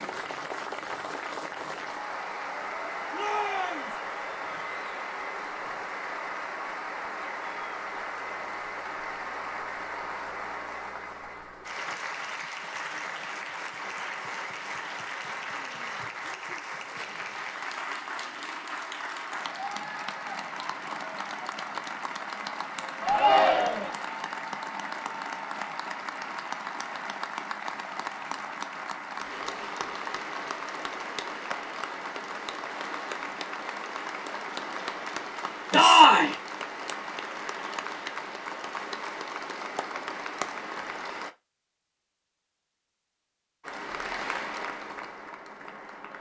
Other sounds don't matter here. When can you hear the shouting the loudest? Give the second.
36 s.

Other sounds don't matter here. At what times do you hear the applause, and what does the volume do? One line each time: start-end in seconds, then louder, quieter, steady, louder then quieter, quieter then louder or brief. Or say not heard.
0.0-41.4 steady
43.6-46.1 brief.